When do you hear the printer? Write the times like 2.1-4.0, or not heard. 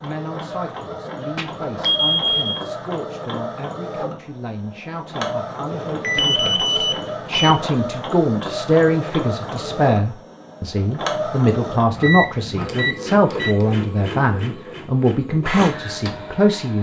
0.0-16.7.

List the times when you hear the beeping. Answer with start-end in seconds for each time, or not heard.
1.4-2.6, 5.7-7.5, 12.0-13.7.